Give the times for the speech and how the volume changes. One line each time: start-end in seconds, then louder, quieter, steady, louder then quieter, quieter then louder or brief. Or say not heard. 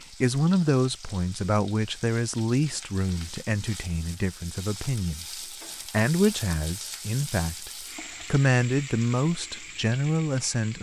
0.2-7.7 quieter then louder
8.3-10.7 brief.